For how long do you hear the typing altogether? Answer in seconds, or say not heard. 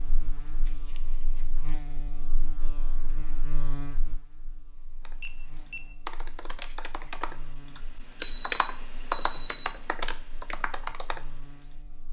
7 s.